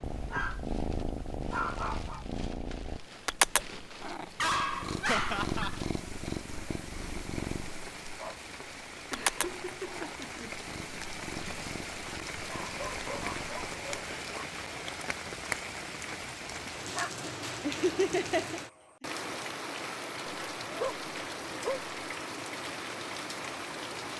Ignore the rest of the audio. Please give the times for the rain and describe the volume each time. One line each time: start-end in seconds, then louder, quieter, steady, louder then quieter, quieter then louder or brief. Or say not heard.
0.0-24.1 louder.